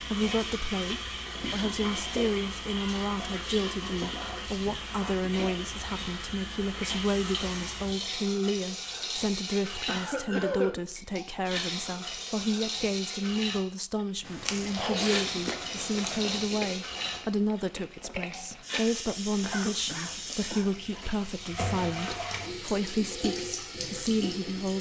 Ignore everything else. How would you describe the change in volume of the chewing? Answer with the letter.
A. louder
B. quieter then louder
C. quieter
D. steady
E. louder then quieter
C.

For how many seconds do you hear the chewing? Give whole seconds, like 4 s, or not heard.
7 s.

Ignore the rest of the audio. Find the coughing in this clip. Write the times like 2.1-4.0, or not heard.
3.9-5.3, 9.8-10.8, 19.4-20.7.